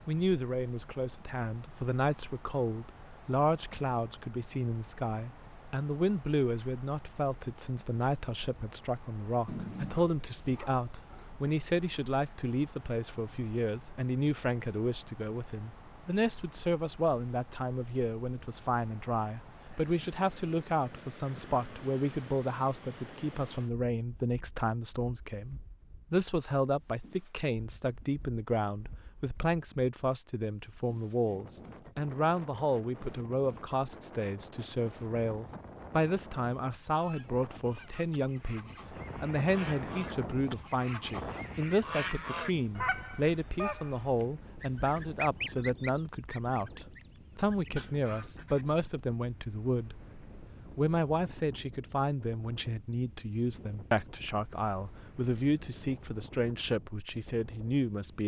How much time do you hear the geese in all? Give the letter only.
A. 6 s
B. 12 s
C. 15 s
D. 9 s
B.